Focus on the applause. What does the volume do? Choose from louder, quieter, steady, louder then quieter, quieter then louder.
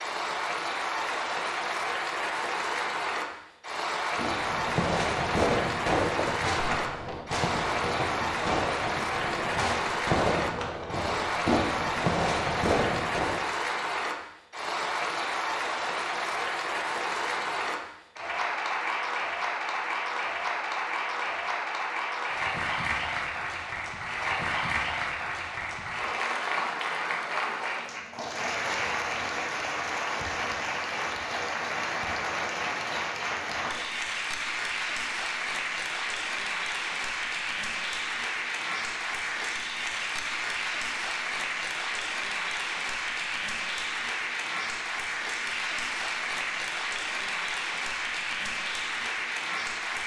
steady.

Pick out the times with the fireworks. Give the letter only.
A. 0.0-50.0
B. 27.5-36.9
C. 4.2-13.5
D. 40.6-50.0
C.